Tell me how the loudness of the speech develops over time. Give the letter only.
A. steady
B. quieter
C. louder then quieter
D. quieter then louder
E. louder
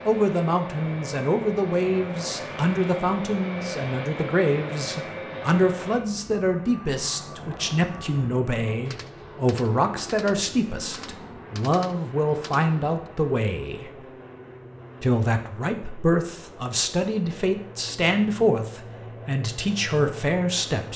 A.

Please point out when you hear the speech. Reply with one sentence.
You can hear the speech from 0.1 to 14.1 s and from 15.0 to 20.9 s.